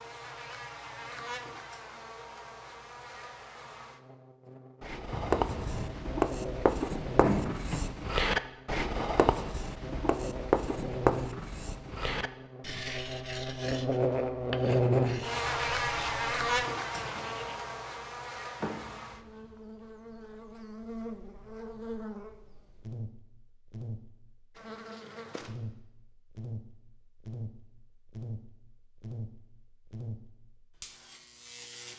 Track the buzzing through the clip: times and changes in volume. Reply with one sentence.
The buzzing can be heard from 0.0 to 31.9 s, getting louder then quieter.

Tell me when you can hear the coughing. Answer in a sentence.
You can hear the coughing from 5.1 to 6.0 s.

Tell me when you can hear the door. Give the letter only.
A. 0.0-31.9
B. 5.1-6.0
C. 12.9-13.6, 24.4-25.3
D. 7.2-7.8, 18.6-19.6
D.